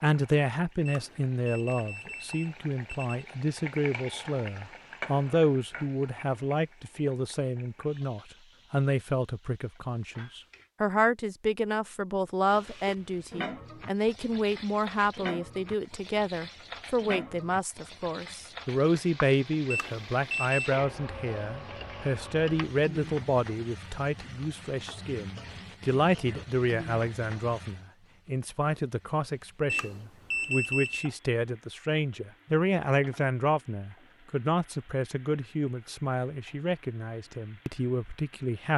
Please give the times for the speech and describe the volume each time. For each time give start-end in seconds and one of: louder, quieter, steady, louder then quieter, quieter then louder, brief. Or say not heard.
0.0-38.7 steady.